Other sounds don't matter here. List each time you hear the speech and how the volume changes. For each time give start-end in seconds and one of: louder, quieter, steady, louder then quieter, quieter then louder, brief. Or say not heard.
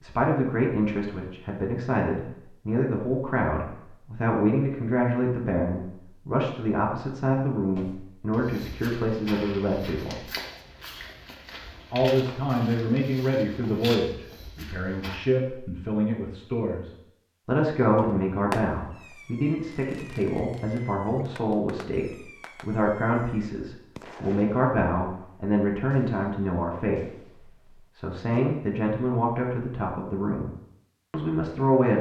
0.0-10.2 steady
11.9-30.5 steady
31.1-31.9 brief.